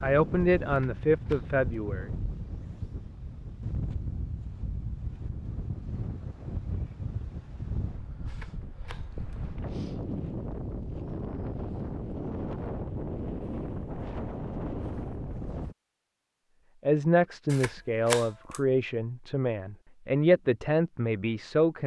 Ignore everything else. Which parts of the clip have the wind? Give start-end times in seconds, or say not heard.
0.0-15.8.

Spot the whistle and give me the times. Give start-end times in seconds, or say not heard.
not heard.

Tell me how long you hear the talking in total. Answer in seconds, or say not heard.
7 s.